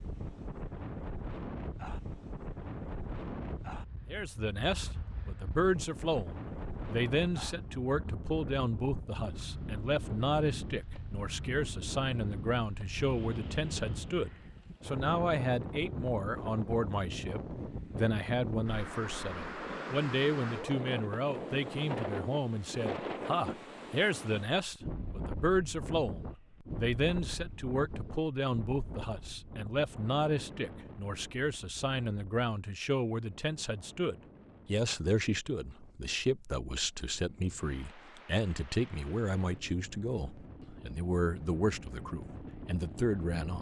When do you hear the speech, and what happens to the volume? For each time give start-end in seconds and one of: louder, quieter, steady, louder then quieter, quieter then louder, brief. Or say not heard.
4.0-43.5 steady.